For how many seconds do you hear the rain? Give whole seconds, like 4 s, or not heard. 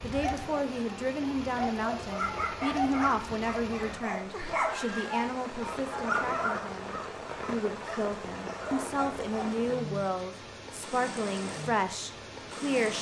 13 s.